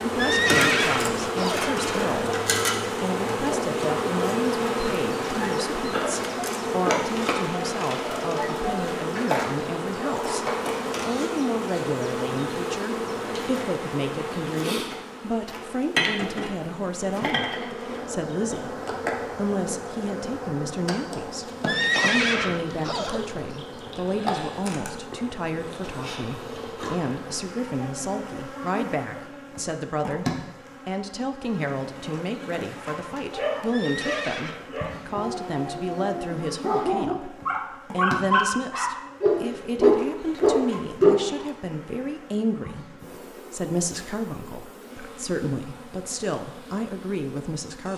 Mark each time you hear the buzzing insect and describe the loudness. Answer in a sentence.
The buzzing insect can be heard from 0.0 to 47.9 s, getting quieter.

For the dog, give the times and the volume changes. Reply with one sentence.
You can hear the dog from 33.1 to 41.1 s, getting louder.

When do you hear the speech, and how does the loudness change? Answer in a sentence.
The speech can be heard from 0.0 to 47.9 s, at a steady volume.